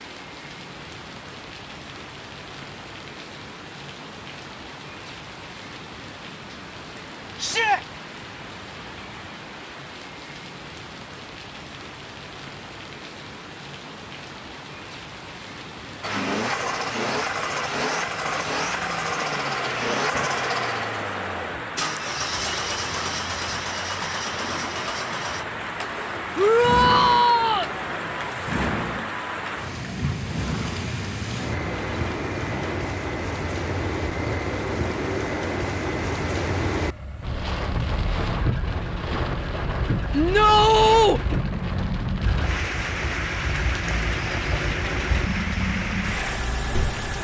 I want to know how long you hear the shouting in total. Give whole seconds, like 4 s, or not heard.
3 s.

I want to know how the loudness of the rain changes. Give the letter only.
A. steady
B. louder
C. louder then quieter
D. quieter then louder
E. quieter
B.